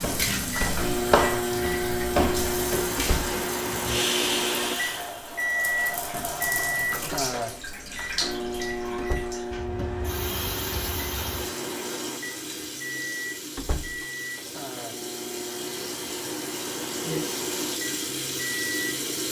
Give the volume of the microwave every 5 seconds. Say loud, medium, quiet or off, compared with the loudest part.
loud, loud, medium, medium.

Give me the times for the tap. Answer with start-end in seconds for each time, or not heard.
0.0-19.2.